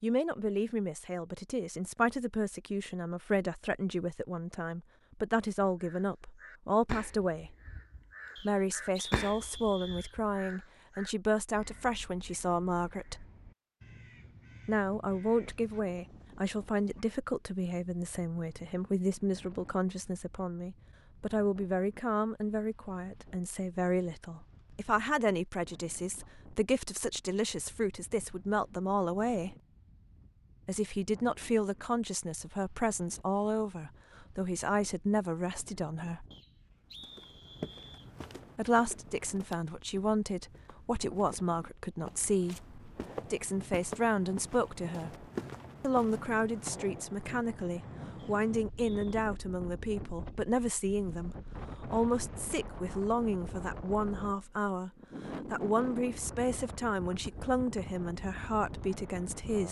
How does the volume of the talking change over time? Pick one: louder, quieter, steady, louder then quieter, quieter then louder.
steady.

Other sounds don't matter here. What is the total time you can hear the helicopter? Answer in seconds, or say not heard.
not heard.